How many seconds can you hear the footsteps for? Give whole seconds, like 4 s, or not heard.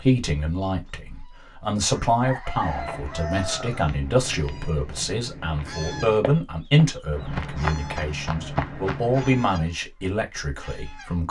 7 s.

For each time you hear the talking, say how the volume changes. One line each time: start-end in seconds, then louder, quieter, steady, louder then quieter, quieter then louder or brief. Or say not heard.
0.0-11.2 steady.